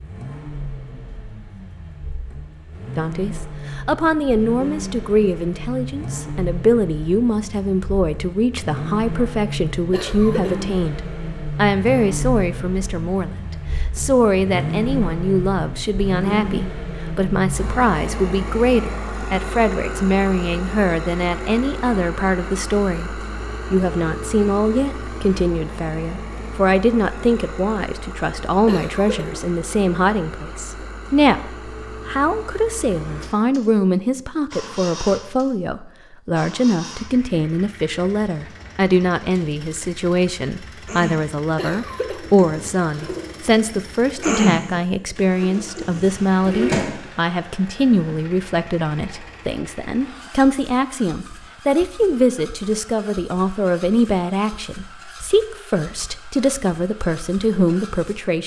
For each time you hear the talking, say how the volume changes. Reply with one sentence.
You can hear the talking from 3.0 to 58.4 s, at a steady volume.